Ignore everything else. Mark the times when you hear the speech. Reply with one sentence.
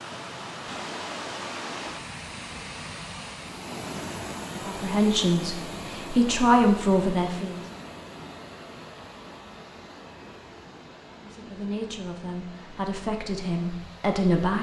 The speech can be heard from 4.6 to 7.6 s and from 11.2 to 14.5 s.